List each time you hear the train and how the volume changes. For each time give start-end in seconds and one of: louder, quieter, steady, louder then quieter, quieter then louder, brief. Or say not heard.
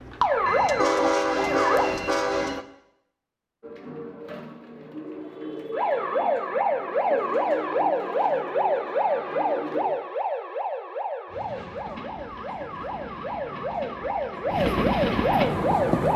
0.0-2.6 brief
11.2-16.1 louder.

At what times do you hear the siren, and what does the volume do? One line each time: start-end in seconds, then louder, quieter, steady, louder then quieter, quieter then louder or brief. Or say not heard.
0.0-1.9 brief
5.7-16.1 quieter then louder.